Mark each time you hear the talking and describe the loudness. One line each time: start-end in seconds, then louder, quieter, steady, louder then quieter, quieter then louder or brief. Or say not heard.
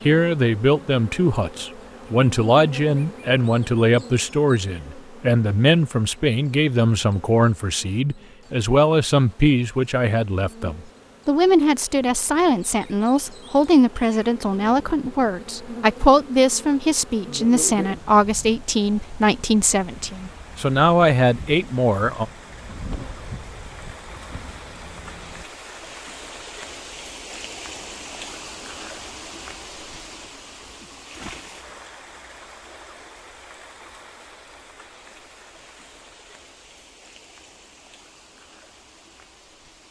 0.1-22.2 steady.